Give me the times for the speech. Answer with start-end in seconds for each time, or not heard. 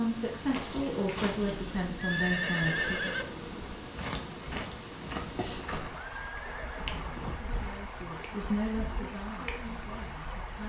0.0-3.1, 7.3-10.6.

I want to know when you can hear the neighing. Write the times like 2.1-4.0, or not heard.
1.3-3.2, 6.0-7.4.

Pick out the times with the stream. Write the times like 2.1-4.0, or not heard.
0.0-10.6.